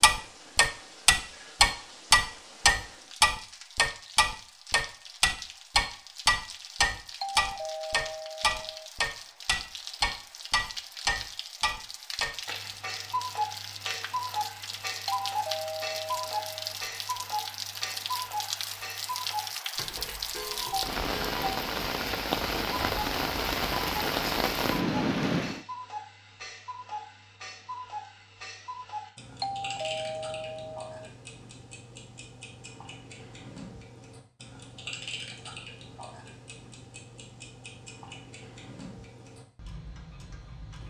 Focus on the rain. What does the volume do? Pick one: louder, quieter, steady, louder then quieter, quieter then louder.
louder.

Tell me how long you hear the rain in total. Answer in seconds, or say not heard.
26 s.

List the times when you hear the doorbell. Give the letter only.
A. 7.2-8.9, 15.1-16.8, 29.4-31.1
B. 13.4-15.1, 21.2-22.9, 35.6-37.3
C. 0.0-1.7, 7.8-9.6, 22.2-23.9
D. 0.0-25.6
A.